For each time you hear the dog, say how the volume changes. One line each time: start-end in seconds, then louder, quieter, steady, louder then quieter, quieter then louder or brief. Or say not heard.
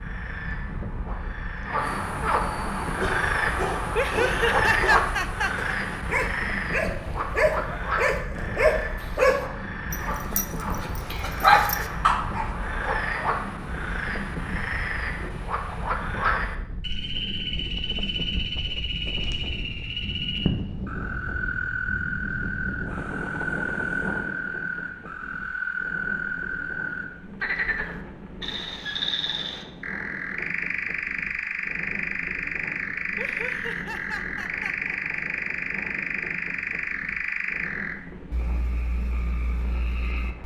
3.0-12.5 louder.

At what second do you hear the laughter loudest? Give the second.
5 s.